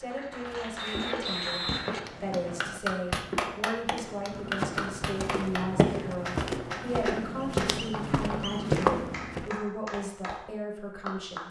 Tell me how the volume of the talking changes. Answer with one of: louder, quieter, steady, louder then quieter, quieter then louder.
steady.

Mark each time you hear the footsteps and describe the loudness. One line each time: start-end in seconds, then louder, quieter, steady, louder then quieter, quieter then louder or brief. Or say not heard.
0.0-9.6 louder.